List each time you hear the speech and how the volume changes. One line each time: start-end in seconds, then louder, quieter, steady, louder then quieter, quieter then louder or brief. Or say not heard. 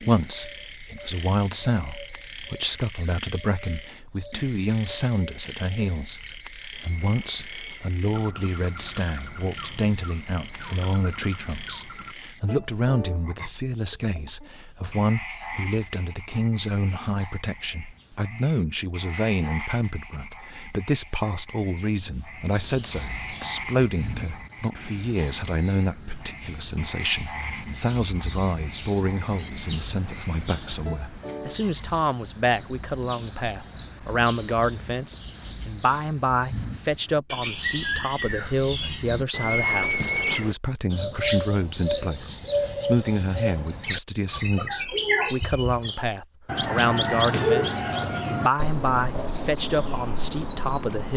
0.0-51.1 steady.